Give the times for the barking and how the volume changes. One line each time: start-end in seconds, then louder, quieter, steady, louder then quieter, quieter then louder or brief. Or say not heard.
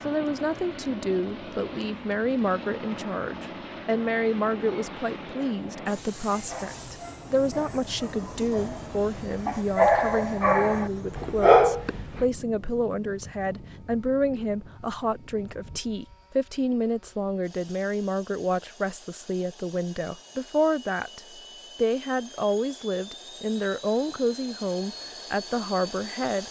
6.3-12.2 louder.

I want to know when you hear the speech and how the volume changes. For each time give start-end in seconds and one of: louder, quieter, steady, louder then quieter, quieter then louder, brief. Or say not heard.
0.1-26.4 steady.